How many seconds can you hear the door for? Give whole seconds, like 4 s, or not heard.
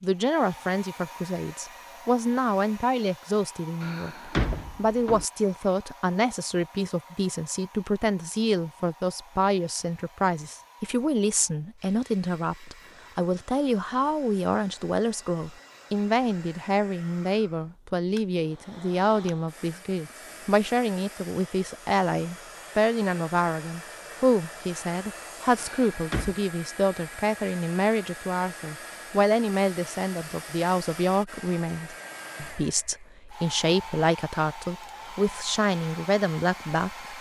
2 s.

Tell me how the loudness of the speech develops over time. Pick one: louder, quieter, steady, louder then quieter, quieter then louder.
steady.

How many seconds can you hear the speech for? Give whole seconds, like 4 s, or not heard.
37 s.